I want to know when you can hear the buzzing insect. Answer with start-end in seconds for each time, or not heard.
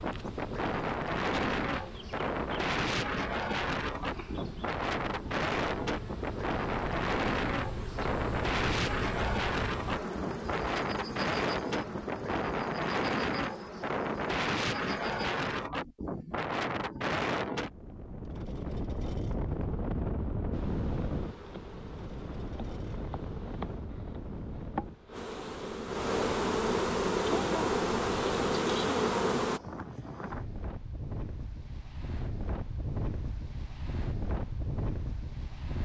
0.0-15.7, 20.5-29.6.